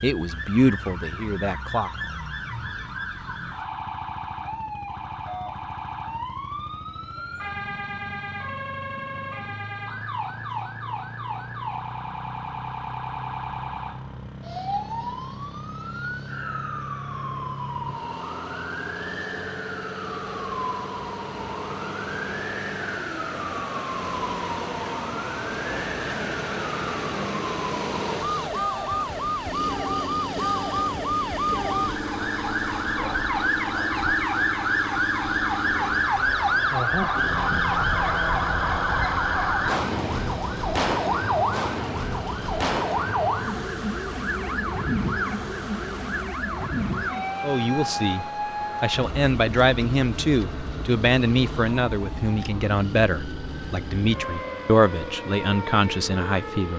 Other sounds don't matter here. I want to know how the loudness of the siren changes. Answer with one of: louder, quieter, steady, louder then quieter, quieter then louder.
louder then quieter.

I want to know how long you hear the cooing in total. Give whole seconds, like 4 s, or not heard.
not heard.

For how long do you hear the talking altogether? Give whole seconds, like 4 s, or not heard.
11 s.